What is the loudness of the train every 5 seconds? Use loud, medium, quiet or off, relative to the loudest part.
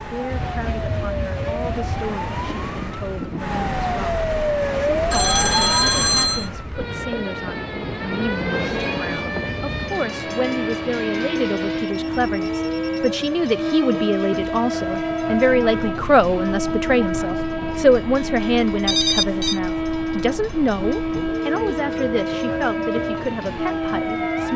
medium, medium, loud, loud, loud.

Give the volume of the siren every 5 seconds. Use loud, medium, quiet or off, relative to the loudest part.
loud, loud, medium, medium, medium.